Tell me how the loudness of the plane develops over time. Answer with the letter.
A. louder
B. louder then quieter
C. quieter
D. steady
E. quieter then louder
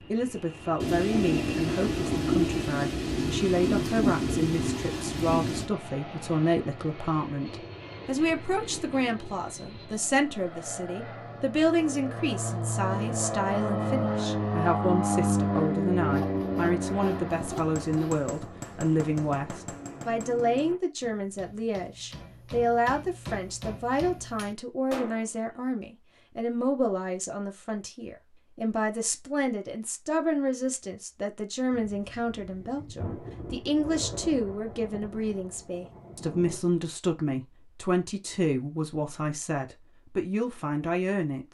B.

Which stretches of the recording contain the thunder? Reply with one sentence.
You can hear the thunder from 0.8 to 5.7 s and from 31.7 to 36.6 s.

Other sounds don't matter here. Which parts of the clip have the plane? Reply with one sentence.
The plane can be heard from 0.0 to 20.8 s.